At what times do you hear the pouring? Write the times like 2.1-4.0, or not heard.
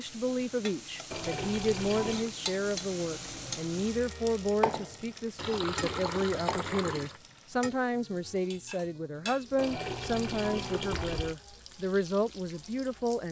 1.1-2.3, 5.3-7.2, 9.6-11.3.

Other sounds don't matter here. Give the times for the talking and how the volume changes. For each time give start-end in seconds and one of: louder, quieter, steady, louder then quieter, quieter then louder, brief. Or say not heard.
0.0-13.2 steady.